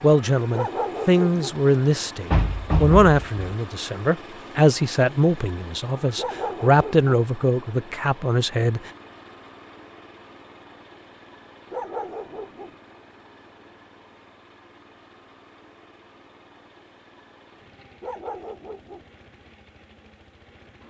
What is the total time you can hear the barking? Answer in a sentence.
You can hear the barking for 4 seconds altogether.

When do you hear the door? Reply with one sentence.
You can hear the door from 2.3 to 3.5 s.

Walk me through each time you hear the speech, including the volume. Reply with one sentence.
The speech can be heard from 0.0 to 8.9 s, at a steady volume.